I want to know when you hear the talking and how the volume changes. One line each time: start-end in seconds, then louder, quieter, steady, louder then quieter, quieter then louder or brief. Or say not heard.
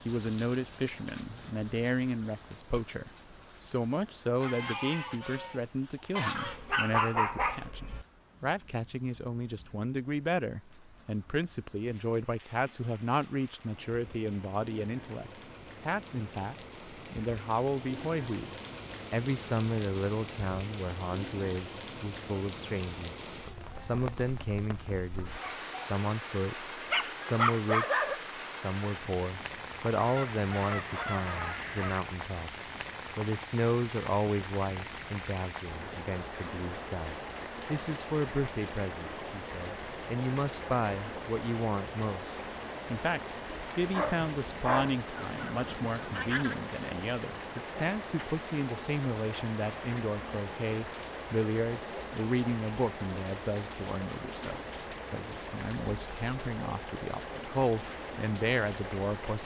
0.1-23.1 steady
23.8-59.4 steady.